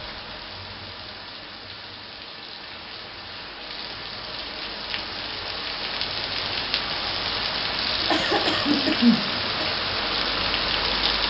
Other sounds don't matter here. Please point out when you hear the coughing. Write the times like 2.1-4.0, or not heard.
8.1-9.7.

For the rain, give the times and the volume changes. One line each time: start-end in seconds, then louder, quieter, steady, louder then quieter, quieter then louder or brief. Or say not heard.
0.0-11.2 louder.